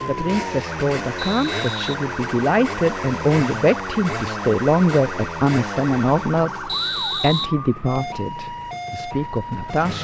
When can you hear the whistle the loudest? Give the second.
7 s.